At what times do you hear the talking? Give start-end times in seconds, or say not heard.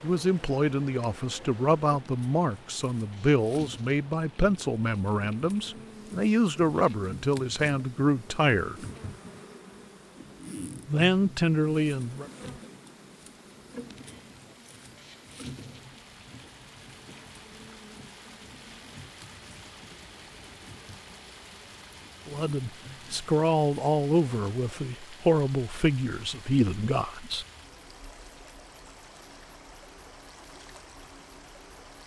0.0-8.8, 10.8-12.3, 22.2-27.4.